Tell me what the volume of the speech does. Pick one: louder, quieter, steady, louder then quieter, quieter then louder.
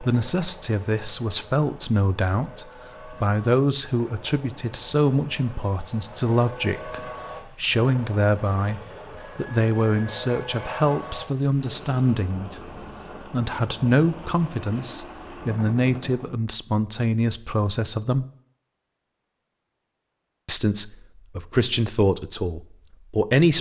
steady.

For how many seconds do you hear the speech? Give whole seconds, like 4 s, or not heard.
21 s.